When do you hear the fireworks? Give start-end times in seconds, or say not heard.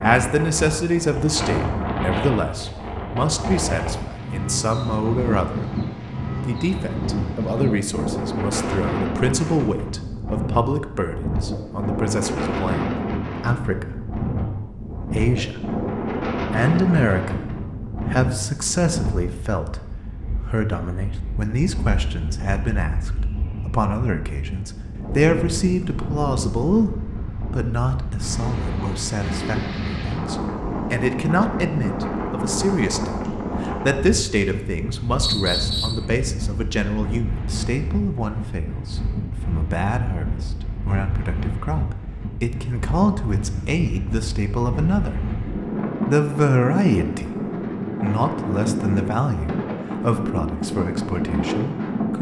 not heard.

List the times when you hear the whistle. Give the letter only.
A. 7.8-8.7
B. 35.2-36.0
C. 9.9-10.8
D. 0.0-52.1
B.